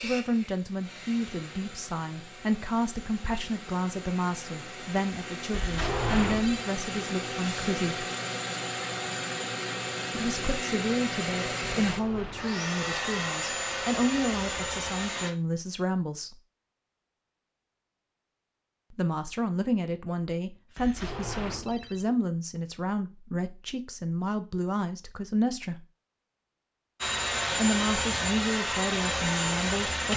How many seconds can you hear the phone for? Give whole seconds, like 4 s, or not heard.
3 s.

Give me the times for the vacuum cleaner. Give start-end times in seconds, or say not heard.
0.0-15.3, 27.0-30.1.